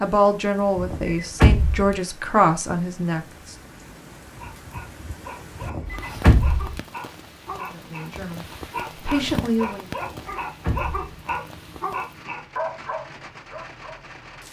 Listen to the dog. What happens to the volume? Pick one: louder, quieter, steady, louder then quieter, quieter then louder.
louder.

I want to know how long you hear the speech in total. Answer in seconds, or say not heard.
6 s.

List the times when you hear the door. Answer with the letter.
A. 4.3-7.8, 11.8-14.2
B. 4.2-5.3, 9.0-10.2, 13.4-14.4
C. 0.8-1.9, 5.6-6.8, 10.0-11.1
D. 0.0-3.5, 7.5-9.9
C.